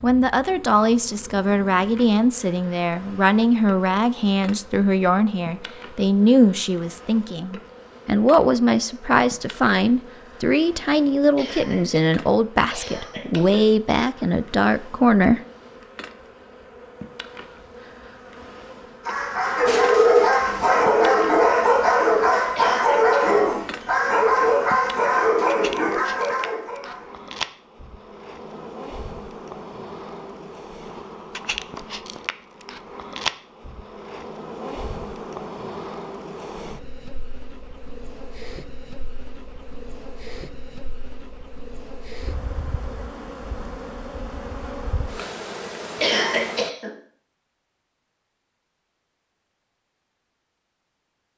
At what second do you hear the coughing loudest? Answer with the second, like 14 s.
46 s.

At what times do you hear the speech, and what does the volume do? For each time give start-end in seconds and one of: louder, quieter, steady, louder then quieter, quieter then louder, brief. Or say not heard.
0.0-15.4 steady.